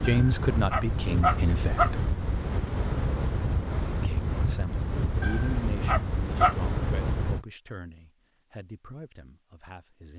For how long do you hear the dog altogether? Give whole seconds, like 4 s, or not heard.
3 s.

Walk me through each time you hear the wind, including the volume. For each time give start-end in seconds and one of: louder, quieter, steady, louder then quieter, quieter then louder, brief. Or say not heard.
0.0-7.5 steady.